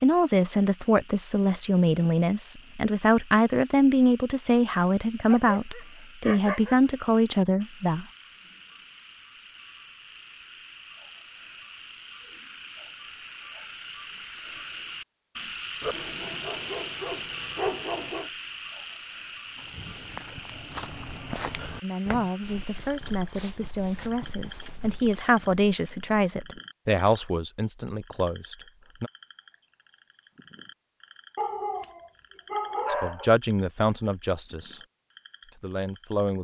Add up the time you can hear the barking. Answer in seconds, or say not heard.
6 s.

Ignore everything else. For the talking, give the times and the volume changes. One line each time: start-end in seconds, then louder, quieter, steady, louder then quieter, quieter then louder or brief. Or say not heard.
0.0-8.1 steady
21.8-29.1 louder then quieter
32.9-34.8 brief
35.5-36.4 brief.